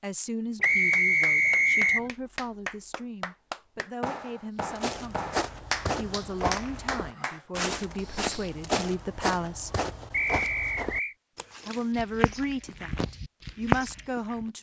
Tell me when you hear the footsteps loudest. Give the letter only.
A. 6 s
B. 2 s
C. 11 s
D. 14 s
D.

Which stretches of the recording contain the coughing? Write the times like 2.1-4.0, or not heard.
not heard.